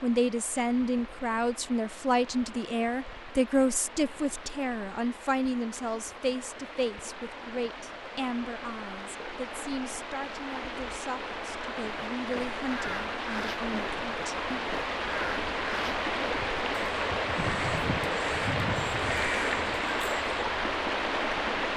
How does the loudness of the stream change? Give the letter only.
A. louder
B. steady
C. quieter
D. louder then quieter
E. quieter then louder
A.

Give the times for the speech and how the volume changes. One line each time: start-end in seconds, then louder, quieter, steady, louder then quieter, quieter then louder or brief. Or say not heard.
0.0-14.6 quieter.